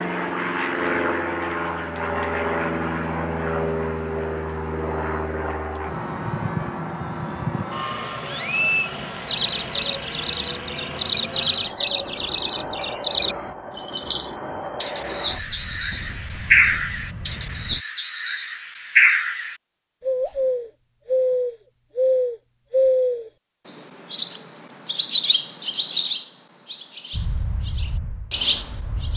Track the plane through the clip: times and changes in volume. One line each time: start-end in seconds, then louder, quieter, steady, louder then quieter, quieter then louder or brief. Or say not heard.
0.0-17.9 quieter
27.1-29.1 brief.